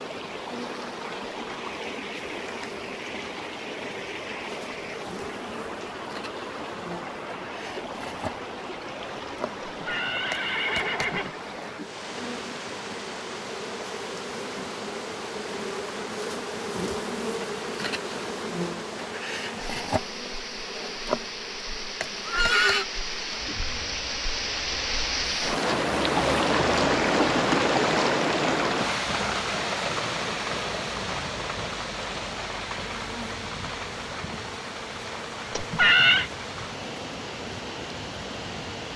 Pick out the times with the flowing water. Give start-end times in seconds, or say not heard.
0.0-38.9.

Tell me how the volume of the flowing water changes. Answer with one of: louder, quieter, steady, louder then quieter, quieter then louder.
louder then quieter.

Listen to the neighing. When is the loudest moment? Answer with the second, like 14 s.
36 s.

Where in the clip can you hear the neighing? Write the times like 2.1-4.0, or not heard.
9.6-11.3, 22.2-22.9, 35.5-36.3.